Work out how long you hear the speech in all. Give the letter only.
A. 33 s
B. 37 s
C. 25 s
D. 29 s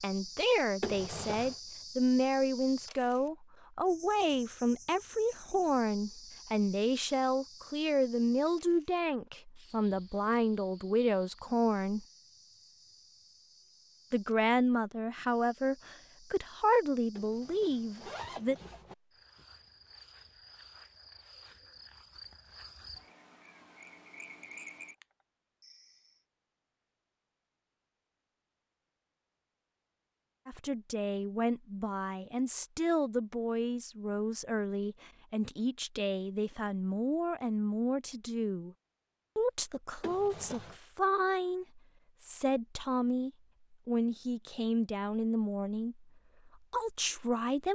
A.